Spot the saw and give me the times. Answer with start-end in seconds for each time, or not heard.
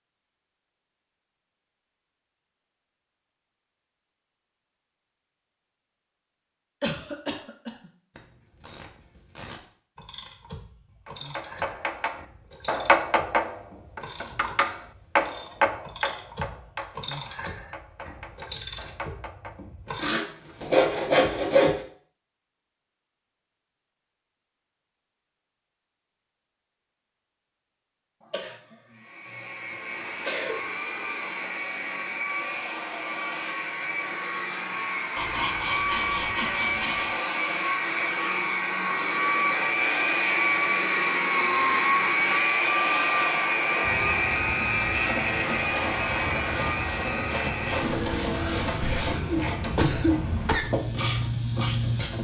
19.9-21.8, 35.1-37.1.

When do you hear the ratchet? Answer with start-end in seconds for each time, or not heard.
8.2-20.1, 43.8-52.1.